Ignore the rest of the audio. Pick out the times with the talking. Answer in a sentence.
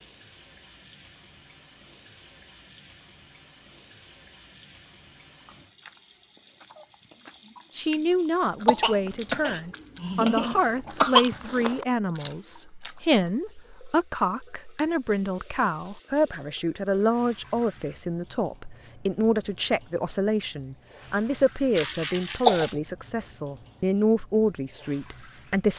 You can hear the talking from 7.8 to 25.7 s.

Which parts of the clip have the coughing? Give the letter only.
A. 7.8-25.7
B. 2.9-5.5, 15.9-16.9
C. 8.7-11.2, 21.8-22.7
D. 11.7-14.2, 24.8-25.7
C.